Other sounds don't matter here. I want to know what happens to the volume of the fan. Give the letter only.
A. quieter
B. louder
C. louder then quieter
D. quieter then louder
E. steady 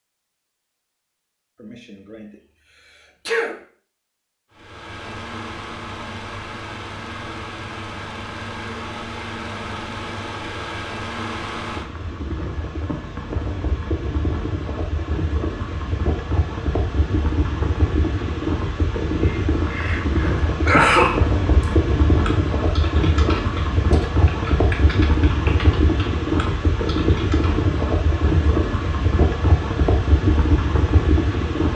B.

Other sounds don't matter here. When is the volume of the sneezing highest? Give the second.
21 s.